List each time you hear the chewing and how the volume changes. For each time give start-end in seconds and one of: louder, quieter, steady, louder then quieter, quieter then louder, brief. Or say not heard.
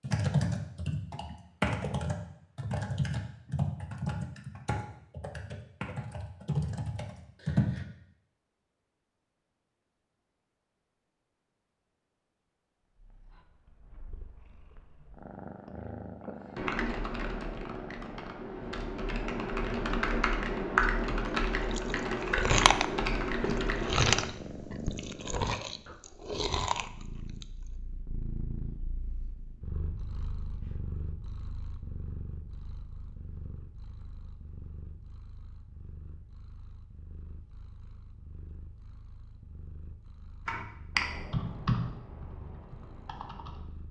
21.6-27.4 quieter.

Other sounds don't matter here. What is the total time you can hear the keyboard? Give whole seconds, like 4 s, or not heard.
19 s.